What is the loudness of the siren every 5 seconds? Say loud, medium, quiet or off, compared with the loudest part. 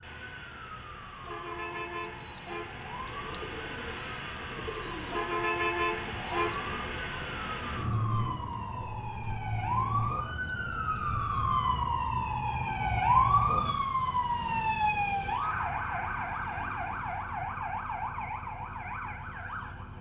quiet, medium, loud, medium.